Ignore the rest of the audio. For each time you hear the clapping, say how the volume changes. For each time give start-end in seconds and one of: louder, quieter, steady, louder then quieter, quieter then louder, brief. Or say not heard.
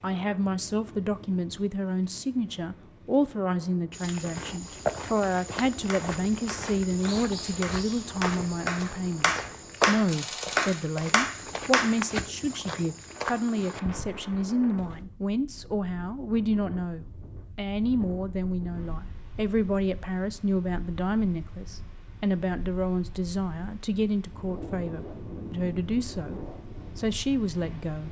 5.8-11.9 louder.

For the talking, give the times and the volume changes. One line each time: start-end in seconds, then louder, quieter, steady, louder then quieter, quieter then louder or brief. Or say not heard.
0.0-28.0 steady.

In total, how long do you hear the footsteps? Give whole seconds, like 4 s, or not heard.
11 s.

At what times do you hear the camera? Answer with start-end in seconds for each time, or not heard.
10.1-10.8.